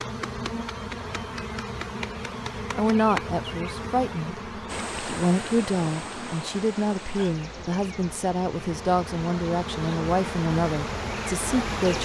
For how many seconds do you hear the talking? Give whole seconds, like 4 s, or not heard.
9 s.